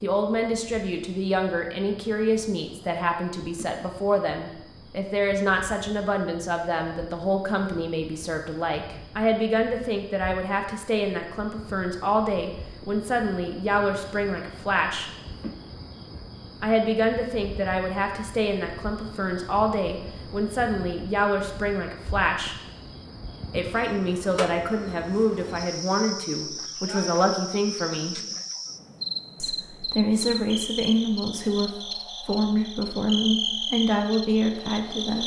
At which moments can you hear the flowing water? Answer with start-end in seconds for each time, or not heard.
not heard.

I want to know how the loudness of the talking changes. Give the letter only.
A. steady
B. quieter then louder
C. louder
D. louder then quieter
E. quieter
A.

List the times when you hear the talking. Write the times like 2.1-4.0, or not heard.
0.0-15.1, 16.6-22.6, 23.5-28.2, 29.4-35.2.